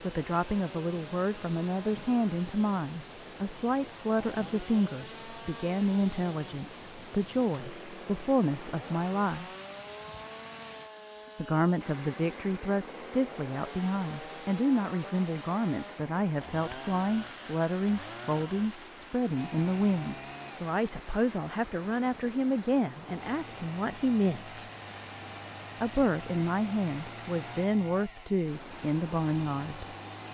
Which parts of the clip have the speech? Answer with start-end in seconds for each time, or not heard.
0.0-9.4, 11.3-24.6, 25.8-29.9.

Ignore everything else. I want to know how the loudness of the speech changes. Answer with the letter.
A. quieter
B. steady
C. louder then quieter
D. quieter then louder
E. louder
B.